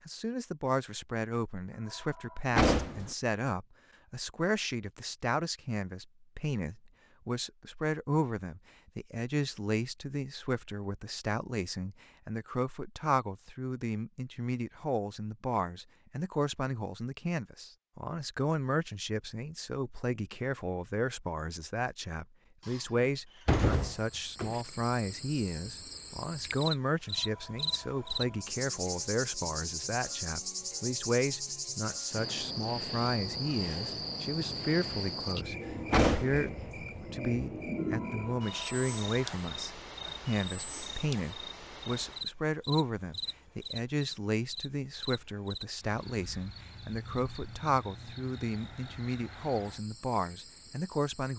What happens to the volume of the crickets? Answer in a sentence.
The loudness of the crickets goes down.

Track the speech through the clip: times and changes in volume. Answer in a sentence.
You can hear the speech from 0.1 to 51.3 s, at a steady volume.